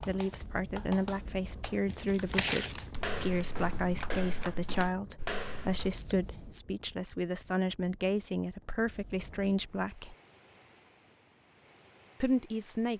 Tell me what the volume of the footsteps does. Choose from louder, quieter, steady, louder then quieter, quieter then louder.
quieter then louder.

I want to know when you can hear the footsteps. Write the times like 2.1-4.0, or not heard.
1.9-6.0.